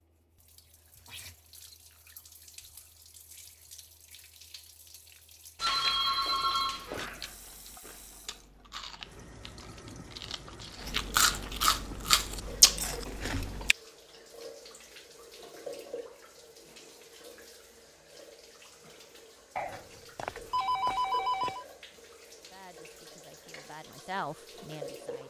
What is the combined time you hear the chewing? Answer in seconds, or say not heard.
8 s.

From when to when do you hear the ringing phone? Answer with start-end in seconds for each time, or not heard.
5.5-7.1, 19.6-21.6.